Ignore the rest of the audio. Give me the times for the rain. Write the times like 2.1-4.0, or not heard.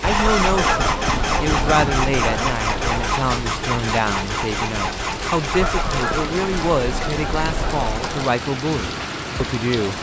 0.0-9.9.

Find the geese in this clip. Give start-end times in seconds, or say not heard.
0.1-3.1, 5.5-8.3.